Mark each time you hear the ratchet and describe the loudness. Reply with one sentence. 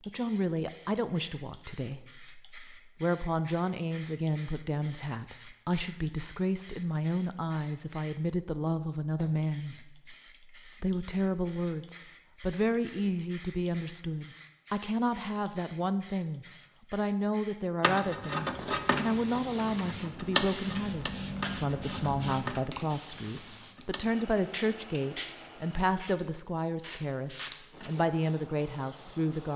The ratchet can be heard from 17.8 to 24.1 s, getting quieter.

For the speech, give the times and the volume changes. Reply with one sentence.
You can hear the speech from 0.1 to 29.5 s, at a steady volume.